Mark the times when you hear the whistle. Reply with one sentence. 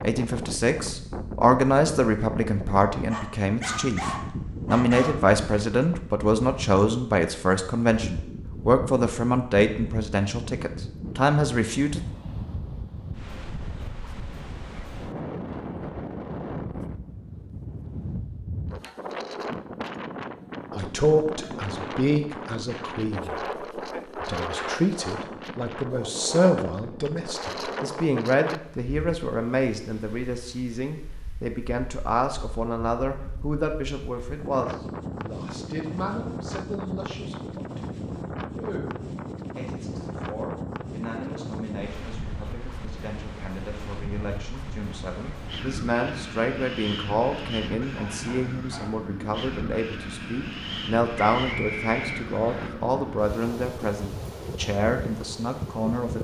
You can hear the whistle from 51.2 to 52.7 s.